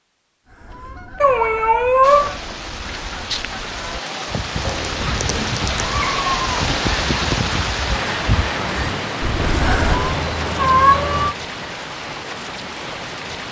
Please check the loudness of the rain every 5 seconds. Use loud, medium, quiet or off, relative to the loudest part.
medium, loud, medium.